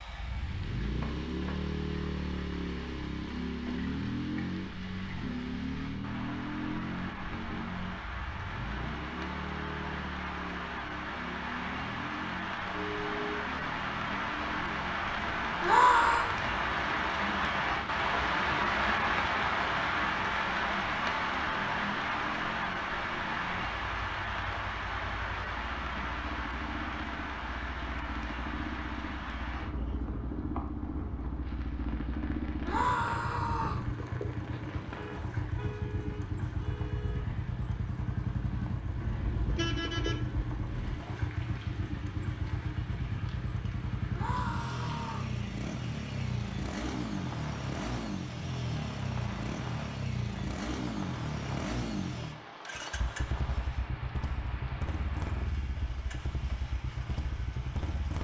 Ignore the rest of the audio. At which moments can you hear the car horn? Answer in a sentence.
You can hear the car horn from 12.7 to 13.5 s, from 34.9 to 37.2 s and from 39.0 to 41.0 s.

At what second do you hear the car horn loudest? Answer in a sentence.
The volume of the car horn peaks at 40 seconds.